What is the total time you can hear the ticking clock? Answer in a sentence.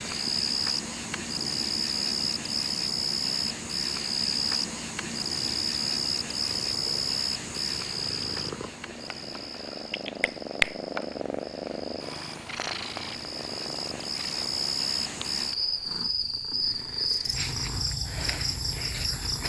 You can't hear the ticking clock here.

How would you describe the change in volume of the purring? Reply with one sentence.
The loudness of the purring goes up, then down.